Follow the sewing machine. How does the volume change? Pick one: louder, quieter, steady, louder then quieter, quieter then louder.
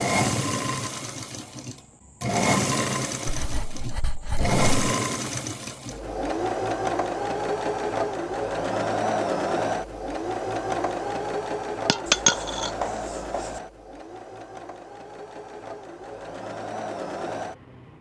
quieter.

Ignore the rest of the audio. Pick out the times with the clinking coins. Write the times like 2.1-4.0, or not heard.
11.8-12.8.